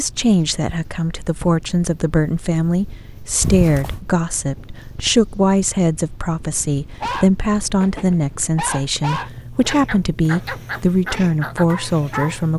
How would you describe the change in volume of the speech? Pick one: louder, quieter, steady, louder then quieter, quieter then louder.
steady.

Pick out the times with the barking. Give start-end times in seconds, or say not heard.
7.0-12.4.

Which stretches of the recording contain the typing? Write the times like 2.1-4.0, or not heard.
not heard.